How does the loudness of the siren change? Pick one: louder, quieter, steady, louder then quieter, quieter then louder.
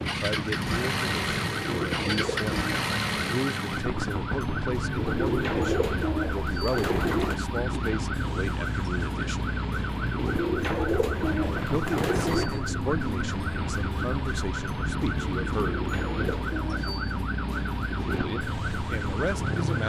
steady.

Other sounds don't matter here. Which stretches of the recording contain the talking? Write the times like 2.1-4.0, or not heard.
0.0-9.4, 11.7-15.8, 18.1-19.8.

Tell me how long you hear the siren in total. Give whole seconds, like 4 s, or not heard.
20 s.